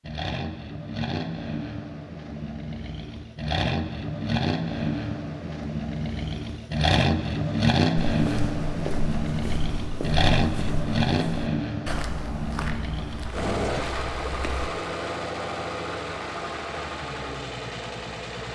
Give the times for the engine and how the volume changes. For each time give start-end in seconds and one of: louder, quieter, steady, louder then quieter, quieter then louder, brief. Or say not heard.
0.0-18.5 louder then quieter.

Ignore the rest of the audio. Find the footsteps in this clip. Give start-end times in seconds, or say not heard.
8.1-14.7.